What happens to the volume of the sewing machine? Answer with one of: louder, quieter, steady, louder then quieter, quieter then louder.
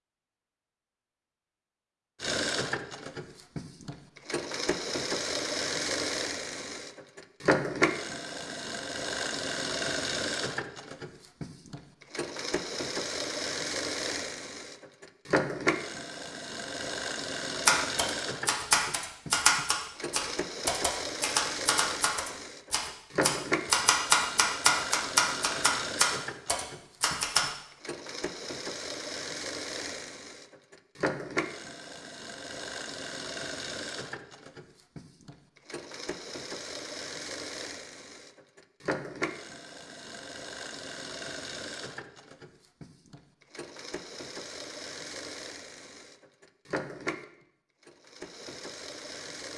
quieter.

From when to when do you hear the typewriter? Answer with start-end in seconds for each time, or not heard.
17.6-27.5.